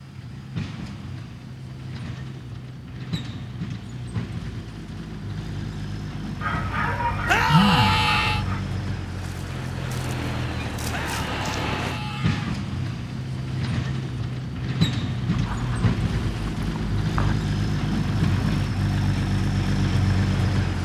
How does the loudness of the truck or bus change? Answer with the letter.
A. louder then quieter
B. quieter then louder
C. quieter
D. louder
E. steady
D.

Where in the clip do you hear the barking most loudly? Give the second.
8 s.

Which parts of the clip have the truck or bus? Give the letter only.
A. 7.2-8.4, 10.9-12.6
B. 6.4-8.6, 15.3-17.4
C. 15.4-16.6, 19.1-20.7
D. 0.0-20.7
D.